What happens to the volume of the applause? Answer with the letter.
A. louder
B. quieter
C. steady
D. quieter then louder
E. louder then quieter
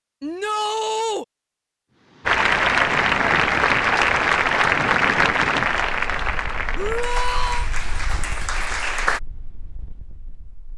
B.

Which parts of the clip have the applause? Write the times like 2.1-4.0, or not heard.
2.2-9.2.